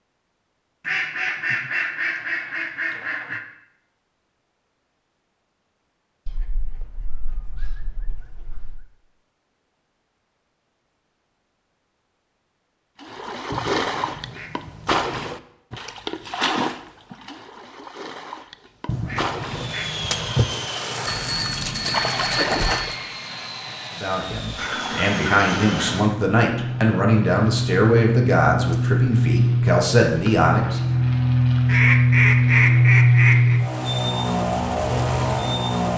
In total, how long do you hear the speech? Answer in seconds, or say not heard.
7 s.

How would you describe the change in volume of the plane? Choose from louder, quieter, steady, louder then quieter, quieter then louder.
louder.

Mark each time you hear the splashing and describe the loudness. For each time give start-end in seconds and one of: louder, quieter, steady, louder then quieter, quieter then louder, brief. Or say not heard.
13.0-23.1 quieter then louder.